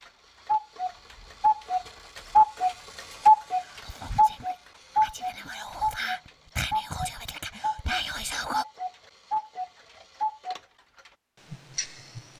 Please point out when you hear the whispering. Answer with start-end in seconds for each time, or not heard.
3.2-8.7.